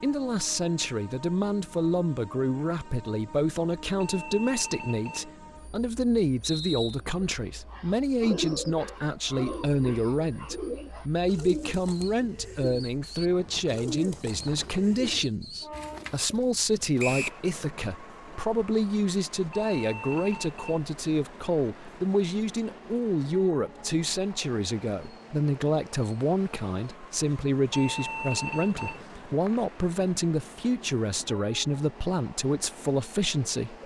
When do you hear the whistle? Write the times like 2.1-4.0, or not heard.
6.4-7.0, 16.9-17.4, 28.8-29.7.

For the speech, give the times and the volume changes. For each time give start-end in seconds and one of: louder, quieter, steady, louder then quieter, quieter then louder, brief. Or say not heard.
0.0-33.8 steady.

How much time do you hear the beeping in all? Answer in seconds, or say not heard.
4 s.